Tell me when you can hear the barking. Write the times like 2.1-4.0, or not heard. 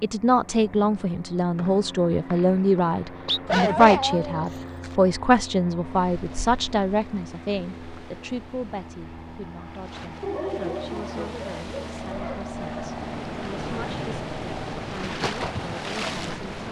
3.5-5.0, 10.2-12.4.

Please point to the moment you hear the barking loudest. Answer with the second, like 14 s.
4 s.